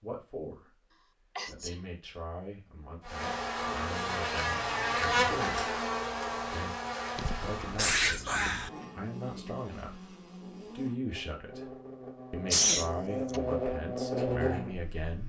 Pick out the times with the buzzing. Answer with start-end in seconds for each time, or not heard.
3.0-15.2.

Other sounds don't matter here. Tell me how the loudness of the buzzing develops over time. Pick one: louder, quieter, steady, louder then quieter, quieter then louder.
quieter then louder.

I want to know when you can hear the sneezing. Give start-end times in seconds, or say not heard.
1.4-1.8, 7.2-8.7, 12.5-13.4.